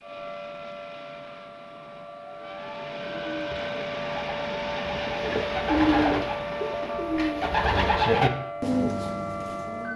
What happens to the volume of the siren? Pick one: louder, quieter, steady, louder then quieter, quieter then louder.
louder.